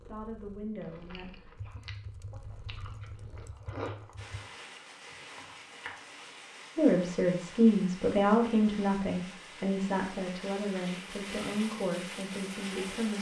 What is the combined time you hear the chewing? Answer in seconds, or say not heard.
5 s.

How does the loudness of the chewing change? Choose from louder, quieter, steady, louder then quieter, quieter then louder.
louder then quieter.